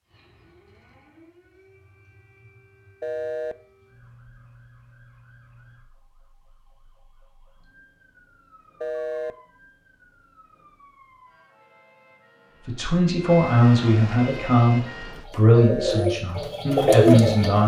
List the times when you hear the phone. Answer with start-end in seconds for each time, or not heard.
3.0-3.5, 8.8-9.3, 15.6-16.1.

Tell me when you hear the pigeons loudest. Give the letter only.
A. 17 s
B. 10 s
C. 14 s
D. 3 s
A.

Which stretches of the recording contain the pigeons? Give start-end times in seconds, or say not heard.
14.2-17.6.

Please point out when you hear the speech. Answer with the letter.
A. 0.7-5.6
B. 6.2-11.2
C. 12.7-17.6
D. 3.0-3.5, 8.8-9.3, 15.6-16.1
C.